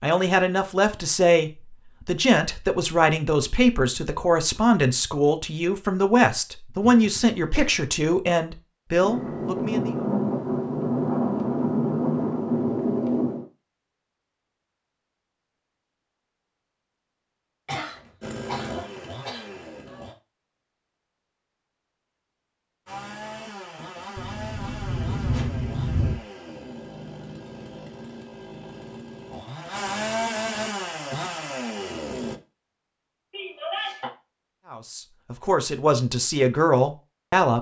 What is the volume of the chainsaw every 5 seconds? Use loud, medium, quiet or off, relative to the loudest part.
off, off, off, medium, medium, medium, loud, off.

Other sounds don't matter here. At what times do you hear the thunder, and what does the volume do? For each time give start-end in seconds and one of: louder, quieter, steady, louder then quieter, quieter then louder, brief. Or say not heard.
9.0-13.4 steady
24.1-26.1 brief.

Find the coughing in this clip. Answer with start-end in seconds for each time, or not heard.
6.8-7.7, 17.6-20.1, 33.3-34.1.